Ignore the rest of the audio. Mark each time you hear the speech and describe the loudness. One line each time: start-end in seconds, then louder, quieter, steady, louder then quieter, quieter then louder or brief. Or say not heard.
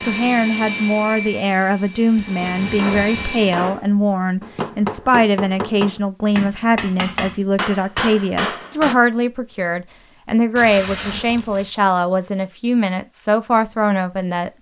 0.0-14.5 steady.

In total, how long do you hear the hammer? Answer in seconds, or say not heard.
7 s.